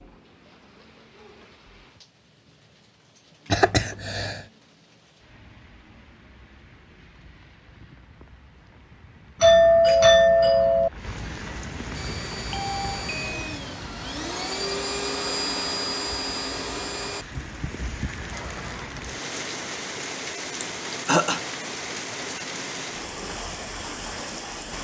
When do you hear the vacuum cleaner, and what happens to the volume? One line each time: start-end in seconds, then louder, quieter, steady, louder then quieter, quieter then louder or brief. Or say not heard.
11.9-18.9 louder then quieter.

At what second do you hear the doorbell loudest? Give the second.
10 s.